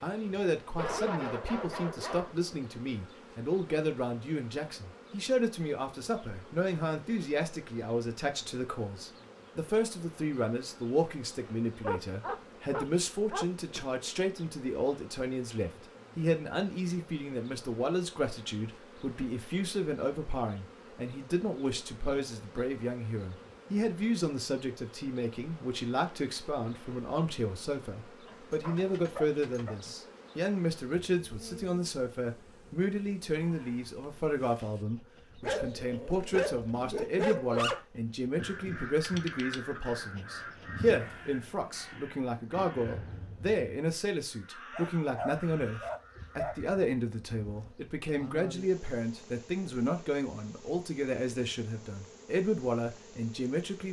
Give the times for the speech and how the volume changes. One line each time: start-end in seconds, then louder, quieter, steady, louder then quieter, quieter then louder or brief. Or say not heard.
0.0-53.8 steady.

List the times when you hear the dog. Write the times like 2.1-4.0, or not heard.
0.8-2.4, 11.8-13.8, 28.2-29.8, 35.4-37.9, 44.8-46.5.